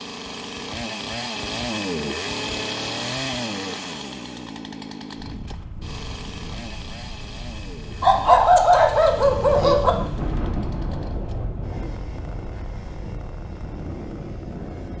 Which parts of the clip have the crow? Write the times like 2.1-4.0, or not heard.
not heard.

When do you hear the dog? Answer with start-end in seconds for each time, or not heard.
8.0-9.9.